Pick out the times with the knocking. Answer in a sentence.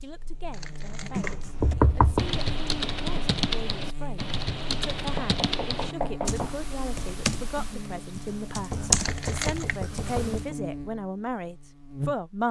The knocking can be heard from 1.6 to 2.3 s, from 5.2 to 6.6 s and from 8.7 to 10.6 s.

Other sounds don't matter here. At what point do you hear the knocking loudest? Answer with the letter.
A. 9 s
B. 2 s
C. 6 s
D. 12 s
B.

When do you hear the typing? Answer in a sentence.
You can hear the typing from 0.8 to 10.5 s.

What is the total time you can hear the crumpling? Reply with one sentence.
You can hear the crumpling for 2 seconds altogether.